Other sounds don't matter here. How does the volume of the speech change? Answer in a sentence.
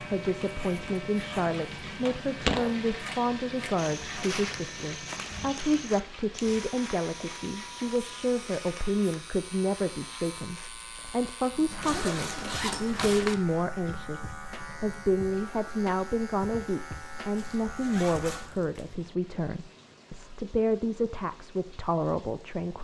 The volume of the speech stays about the same.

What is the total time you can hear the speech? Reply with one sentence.
The speech can be heard for 23 seconds in total.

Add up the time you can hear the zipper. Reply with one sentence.
You can hear the zipper for 4 seconds altogether.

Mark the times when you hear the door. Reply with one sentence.
The door can't be heard in this clip.